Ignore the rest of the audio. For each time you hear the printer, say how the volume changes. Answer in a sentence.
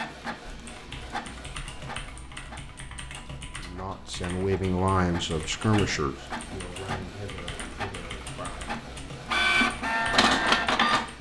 The printer can be heard from 0.0 to 11.1 s, getting quieter then louder.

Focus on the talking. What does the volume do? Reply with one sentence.
The volume of the talking goes down.